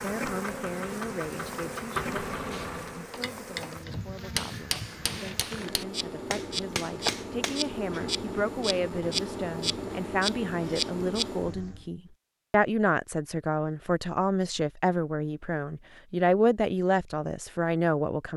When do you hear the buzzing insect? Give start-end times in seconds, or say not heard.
0.0-11.8.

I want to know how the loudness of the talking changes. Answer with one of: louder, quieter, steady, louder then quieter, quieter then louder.
louder.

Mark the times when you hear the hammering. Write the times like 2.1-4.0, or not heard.
2.5-7.7.